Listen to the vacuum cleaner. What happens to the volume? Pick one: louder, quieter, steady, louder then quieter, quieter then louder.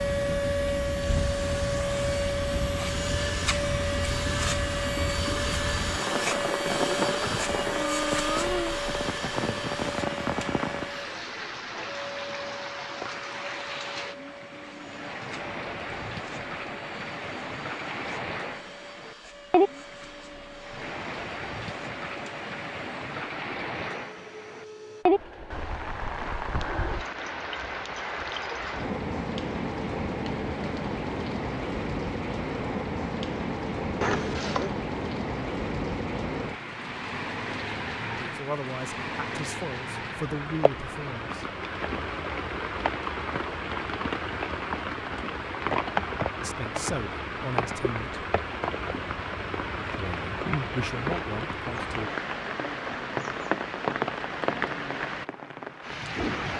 quieter.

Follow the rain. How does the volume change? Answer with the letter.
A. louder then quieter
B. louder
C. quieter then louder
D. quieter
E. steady
E.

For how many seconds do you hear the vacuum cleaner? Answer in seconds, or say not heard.
25 s.